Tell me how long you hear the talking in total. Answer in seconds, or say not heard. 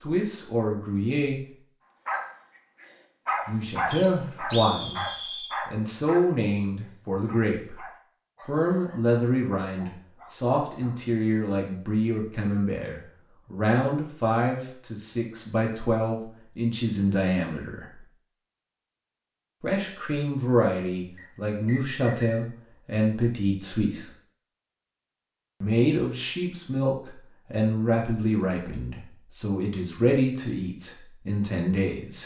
26 s.